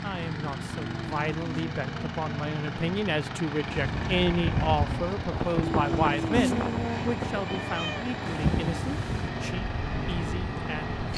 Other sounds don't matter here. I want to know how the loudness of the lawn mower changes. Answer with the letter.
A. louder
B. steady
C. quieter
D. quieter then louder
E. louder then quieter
B.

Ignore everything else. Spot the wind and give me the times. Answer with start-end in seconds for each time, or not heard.
3.6-11.1.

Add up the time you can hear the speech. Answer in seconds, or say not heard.
11 s.